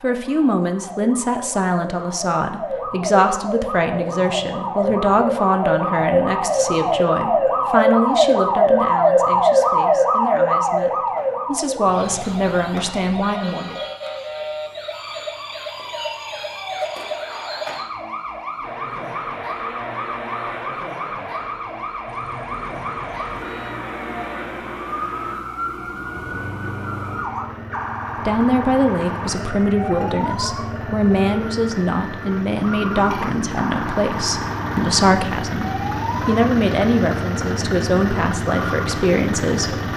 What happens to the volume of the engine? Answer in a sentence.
The loudness of the engine goes up.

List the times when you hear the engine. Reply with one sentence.
The engine can be heard from 18.6 to 39.9 s.